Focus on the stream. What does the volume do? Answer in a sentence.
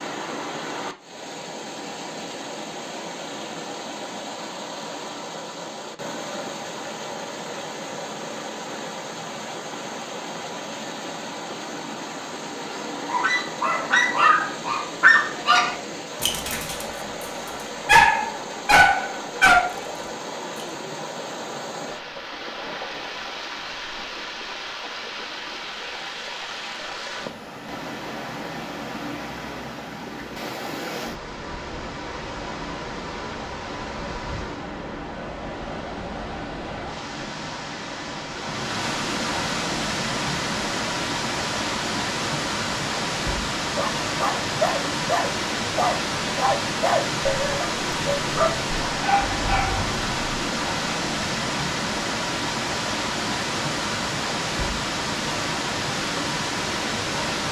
The volume of the stream goes up.